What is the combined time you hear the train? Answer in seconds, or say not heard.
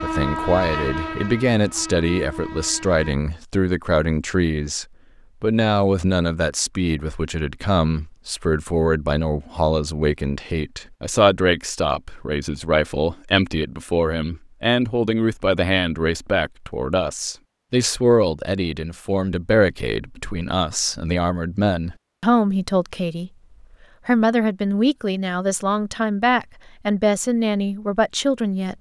3 s.